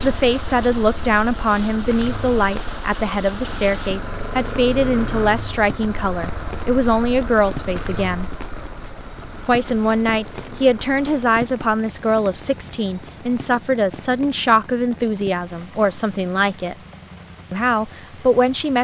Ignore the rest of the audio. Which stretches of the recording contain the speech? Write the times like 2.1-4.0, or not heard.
0.0-8.3, 9.4-16.8, 17.5-18.7.